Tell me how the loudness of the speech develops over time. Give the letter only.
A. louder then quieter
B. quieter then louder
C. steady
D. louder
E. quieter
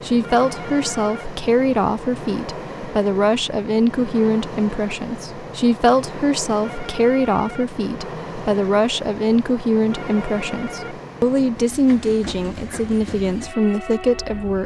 C.